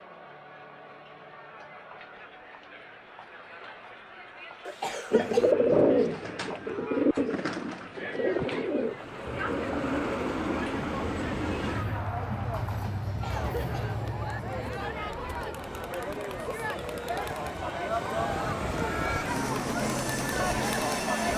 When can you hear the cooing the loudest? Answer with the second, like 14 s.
6 s.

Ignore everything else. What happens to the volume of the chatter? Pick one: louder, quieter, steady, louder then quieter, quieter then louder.
louder.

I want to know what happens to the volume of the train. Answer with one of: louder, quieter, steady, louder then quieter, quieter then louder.
quieter then louder.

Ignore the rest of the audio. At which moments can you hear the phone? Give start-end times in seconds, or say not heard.
not heard.